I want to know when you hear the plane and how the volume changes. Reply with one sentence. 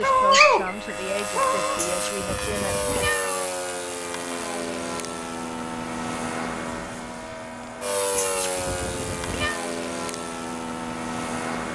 The plane can be heard from 0.0 to 11.7 s, at a steady volume.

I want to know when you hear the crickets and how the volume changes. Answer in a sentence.
The crickets can't be heard in this clip.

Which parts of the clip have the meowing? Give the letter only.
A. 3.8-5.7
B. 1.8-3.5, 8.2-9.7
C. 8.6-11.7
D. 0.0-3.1
B.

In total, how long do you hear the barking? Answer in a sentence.
The barking can be heard for 2 seconds in total.